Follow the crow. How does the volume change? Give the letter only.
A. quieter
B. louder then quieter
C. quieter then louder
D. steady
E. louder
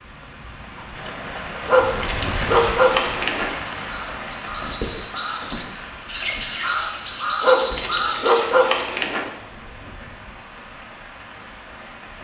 E.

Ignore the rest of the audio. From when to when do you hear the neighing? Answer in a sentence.
The neighing can't be heard in this clip.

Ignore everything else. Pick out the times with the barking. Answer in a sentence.
You can hear the barking from 1.6 to 3.5 s and from 7.4 to 9.3 s.